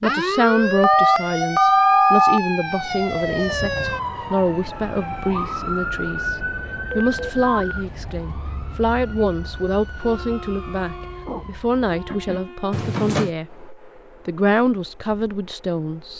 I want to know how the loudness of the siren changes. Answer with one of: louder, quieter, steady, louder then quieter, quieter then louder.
quieter.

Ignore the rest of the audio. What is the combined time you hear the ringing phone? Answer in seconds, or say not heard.
3 s.